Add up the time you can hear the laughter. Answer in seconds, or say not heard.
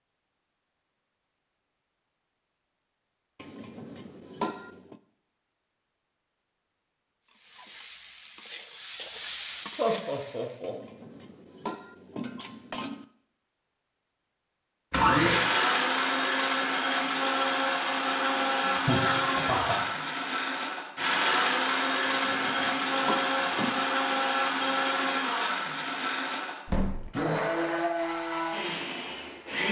3 s.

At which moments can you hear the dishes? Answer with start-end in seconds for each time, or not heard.
3.4-5.0, 10.6-13.1, 22.1-23.9.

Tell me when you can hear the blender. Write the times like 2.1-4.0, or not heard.
14.9-29.6.